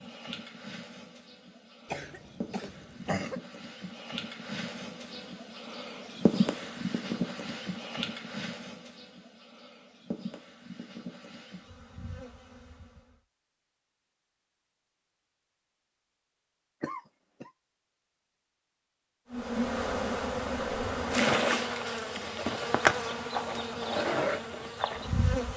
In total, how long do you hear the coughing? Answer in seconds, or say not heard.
2 s.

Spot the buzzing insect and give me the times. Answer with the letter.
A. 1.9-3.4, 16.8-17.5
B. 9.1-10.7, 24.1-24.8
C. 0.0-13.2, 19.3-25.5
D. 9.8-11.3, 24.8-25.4
C.